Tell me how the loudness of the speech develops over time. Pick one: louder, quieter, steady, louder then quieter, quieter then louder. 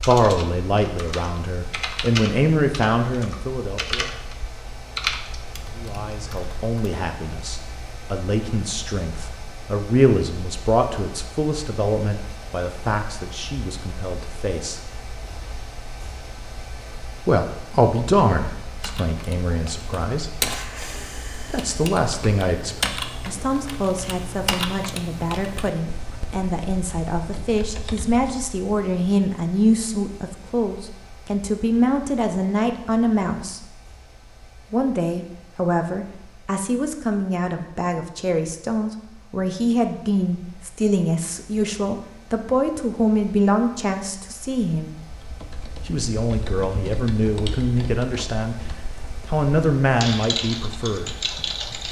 steady.